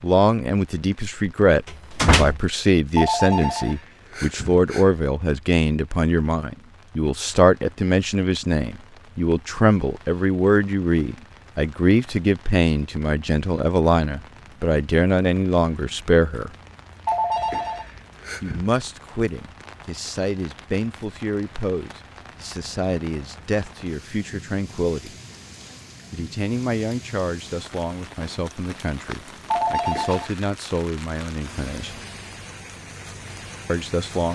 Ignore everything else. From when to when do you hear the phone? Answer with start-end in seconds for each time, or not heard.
3.0-4.8, 17.1-18.6, 29.5-30.4.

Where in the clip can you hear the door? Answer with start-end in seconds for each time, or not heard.
1.6-2.4.